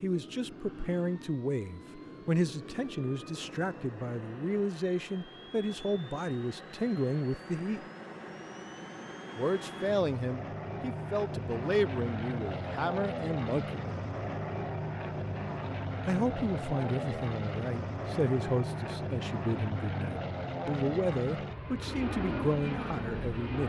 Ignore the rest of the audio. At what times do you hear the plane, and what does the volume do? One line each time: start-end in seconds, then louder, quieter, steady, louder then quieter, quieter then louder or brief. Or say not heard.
0.0-23.6 louder.